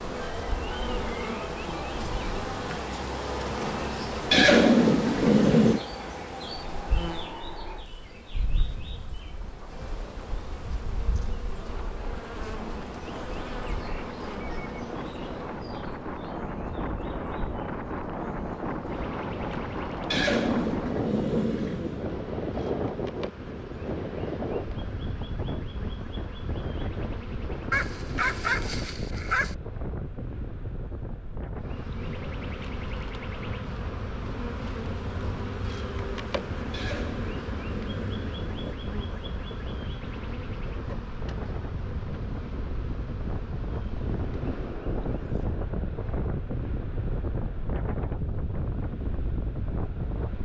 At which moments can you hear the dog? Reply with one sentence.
You can hear the dog from 27.7 to 29.6 s.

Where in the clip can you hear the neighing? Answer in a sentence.
You can hear the neighing from 4.3 to 5.8 s, from 20.1 to 22.1 s and from 36.7 to 38.8 s.